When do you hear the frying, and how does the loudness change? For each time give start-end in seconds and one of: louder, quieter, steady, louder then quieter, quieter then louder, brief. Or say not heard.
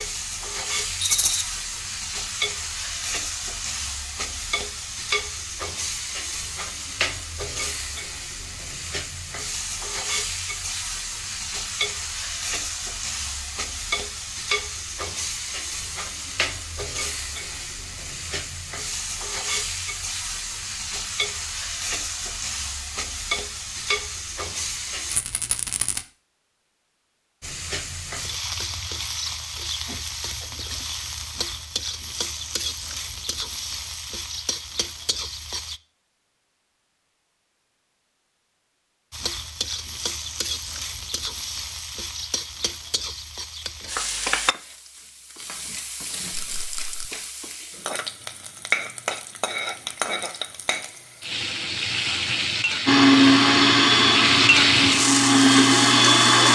0.0-25.2 steady
27.4-35.8 steady
39.1-56.5 louder.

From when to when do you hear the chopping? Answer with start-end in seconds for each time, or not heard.
not heard.